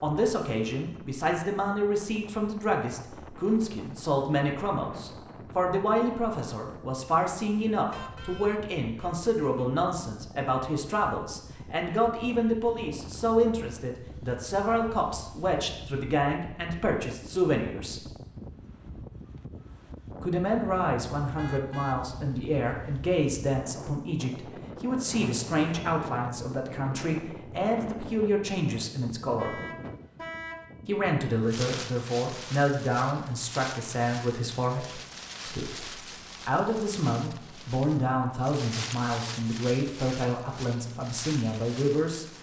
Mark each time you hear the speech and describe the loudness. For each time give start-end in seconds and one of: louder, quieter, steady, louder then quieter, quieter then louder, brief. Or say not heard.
0.0-18.1 steady
20.2-29.6 steady
30.9-42.2 steady.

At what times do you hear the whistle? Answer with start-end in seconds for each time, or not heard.
not heard.